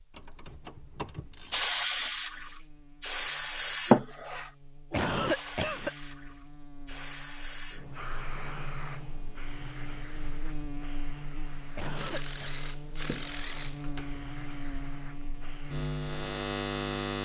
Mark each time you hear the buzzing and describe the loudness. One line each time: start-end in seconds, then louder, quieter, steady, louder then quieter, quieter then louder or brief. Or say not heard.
0.0-17.2 louder.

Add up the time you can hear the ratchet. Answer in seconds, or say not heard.
4 s.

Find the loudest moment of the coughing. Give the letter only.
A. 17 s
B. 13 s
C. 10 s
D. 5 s
D.